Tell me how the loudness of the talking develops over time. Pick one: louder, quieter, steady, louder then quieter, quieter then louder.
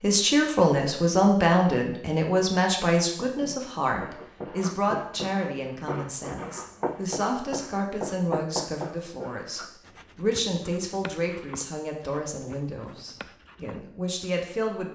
quieter.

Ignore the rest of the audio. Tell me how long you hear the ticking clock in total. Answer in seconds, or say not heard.
not heard.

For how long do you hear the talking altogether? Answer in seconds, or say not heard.
15 s.